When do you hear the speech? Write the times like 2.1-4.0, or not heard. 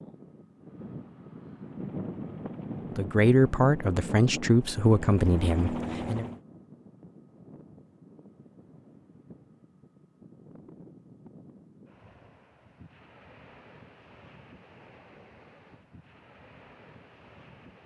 3.0-6.3.